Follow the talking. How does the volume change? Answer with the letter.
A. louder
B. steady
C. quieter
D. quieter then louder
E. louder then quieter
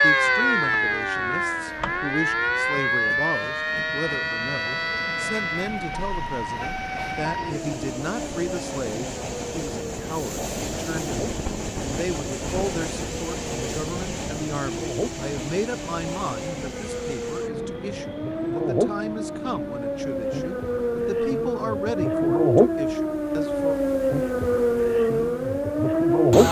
B.